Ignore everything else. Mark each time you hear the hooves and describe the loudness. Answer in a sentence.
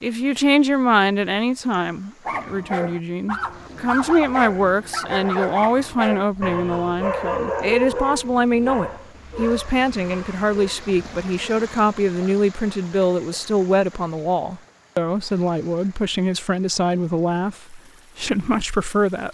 You can't hear the hooves here.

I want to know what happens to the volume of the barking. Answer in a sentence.
The volume of the barking goes down.